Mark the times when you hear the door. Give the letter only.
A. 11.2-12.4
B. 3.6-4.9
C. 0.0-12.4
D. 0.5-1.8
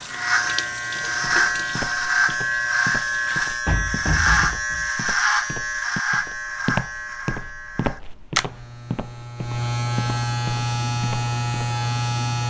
B.